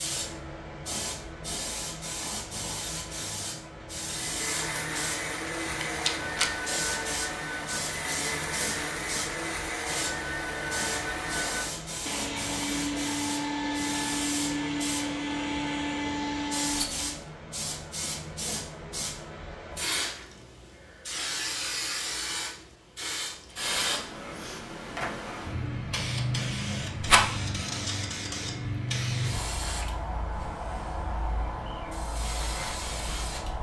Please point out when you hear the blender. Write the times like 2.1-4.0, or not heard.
4.0-17.2.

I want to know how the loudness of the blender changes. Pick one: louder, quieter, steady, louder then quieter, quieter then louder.
steady.